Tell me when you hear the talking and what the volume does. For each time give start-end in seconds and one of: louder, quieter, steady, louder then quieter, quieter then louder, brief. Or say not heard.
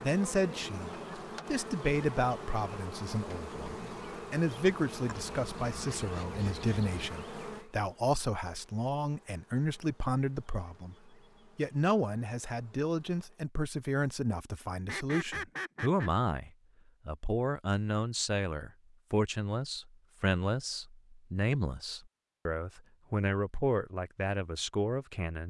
0.0-25.4 steady.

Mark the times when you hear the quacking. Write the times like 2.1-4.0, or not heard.
5.0-7.1, 14.8-16.1.